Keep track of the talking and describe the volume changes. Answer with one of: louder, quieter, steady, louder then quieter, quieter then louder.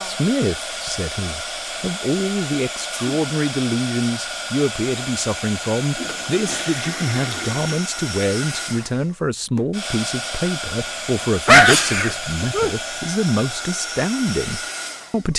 steady.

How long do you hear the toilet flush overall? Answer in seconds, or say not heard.
2 s.